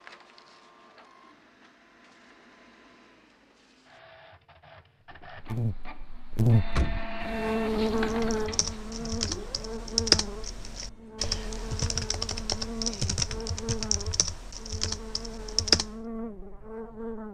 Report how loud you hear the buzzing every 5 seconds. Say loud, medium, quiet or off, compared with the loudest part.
off, loud, medium, medium.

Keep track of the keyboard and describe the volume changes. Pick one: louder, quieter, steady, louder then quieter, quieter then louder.
louder then quieter.